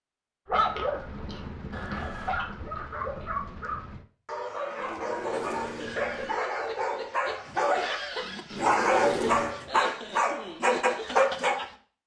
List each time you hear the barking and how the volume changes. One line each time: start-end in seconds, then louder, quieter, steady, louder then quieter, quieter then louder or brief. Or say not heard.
0.5-11.7 louder.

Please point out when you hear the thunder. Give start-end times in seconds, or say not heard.
0.5-4.0.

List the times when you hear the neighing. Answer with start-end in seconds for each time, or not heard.
1.7-2.4, 4.8-6.5, 8.5-9.6.